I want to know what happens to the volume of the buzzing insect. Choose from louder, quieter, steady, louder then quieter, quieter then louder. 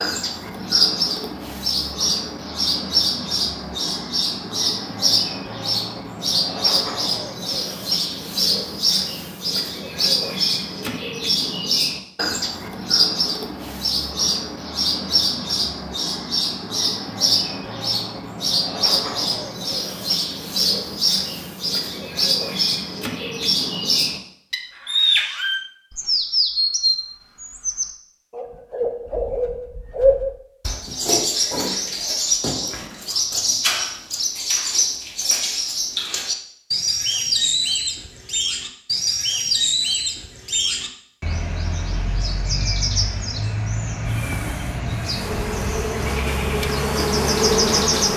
louder.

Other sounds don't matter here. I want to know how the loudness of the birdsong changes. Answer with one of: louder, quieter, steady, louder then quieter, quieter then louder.
steady.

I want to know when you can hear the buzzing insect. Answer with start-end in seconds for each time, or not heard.
44.0-48.1.